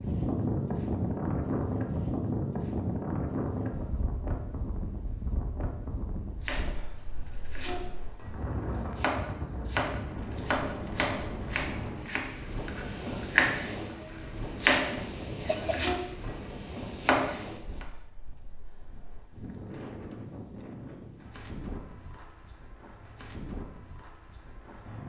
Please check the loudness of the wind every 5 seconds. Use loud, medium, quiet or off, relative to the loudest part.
loud, medium, medium, medium, quiet.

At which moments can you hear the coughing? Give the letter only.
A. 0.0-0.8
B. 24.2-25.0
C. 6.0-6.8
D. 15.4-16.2
D.